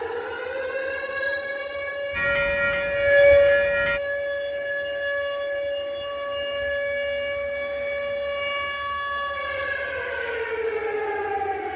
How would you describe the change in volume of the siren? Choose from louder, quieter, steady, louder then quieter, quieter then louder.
louder then quieter.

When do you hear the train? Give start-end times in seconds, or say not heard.
2.1-4.0.